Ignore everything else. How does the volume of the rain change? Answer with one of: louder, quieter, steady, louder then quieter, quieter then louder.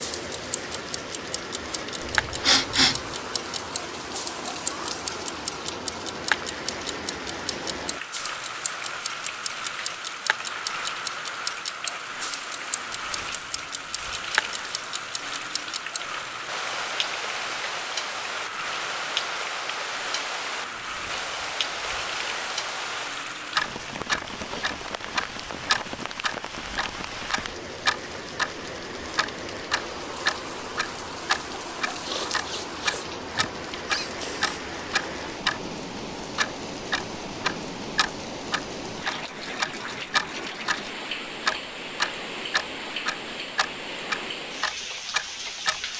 steady.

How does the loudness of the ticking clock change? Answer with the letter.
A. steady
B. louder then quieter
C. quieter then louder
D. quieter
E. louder
E.